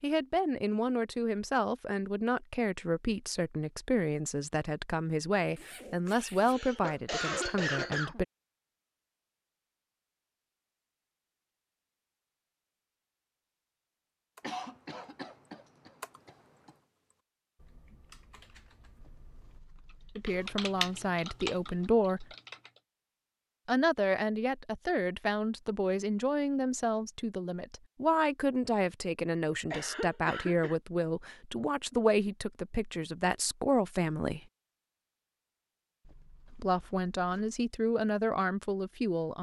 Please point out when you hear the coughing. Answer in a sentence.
You can hear the coughing from 6.0 to 8.2 s, from 14.4 to 16.8 s and from 29.5 to 30.8 s.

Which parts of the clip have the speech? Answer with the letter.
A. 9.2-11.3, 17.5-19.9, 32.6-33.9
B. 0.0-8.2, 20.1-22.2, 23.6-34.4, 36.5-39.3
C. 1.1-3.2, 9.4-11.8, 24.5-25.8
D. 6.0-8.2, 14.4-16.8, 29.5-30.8
B.